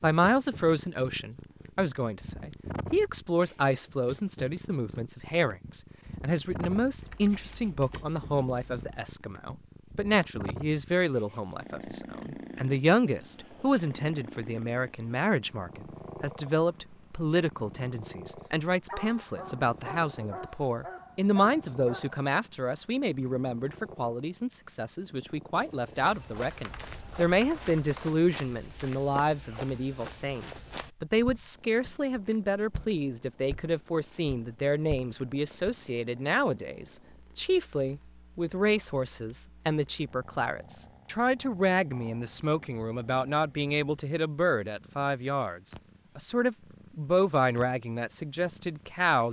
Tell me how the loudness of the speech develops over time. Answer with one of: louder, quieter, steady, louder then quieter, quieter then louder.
steady.